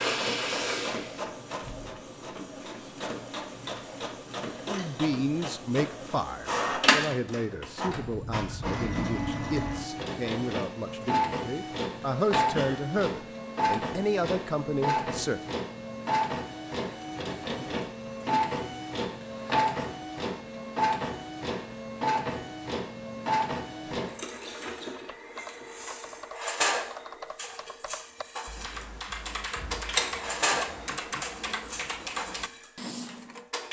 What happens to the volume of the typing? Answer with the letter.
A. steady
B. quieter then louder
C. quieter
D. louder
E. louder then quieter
D.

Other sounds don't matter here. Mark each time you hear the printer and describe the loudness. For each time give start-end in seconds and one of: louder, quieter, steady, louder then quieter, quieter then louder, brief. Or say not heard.
0.0-33.6 steady.